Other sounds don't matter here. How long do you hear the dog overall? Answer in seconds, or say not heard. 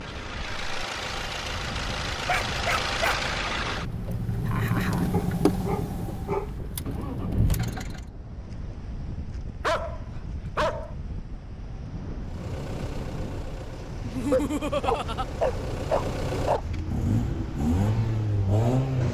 6 s.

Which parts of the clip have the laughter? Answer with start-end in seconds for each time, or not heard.
4.2-5.1, 14.0-15.2.